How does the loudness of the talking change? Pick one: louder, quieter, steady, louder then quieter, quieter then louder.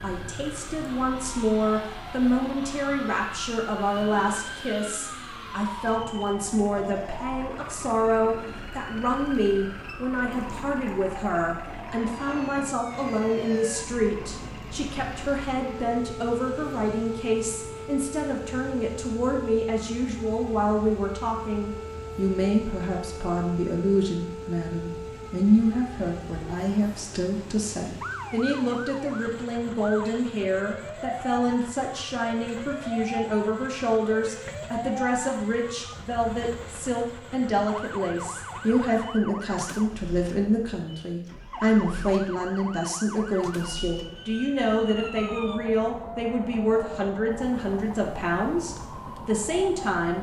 steady.